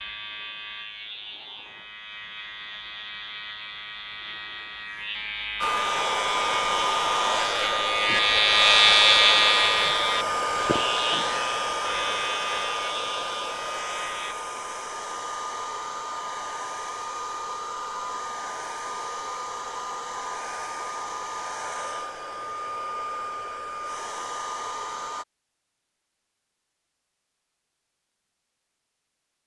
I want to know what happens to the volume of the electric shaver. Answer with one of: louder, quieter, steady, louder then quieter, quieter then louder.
louder then quieter.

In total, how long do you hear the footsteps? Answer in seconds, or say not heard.
not heard.